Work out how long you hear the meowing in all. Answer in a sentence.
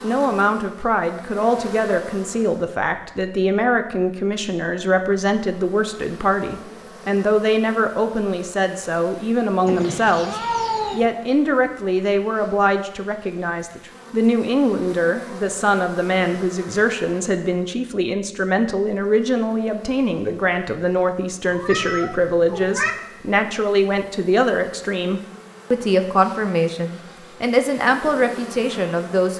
You can hear the meowing for 3 seconds altogether.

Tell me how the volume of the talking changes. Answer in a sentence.
The volume of the talking stays about the same.